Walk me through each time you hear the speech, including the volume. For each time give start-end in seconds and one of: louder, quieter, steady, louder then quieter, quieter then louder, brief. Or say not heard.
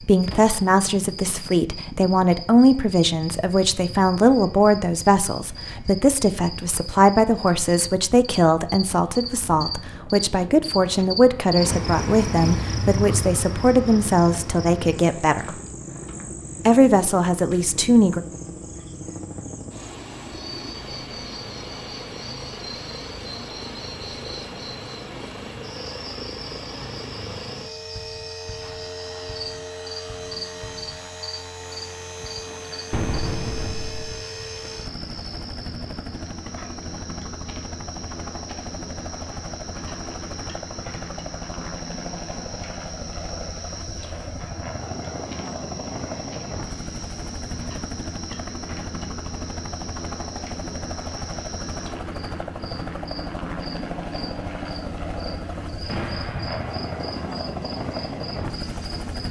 0.1-15.6 steady
16.6-18.2 brief.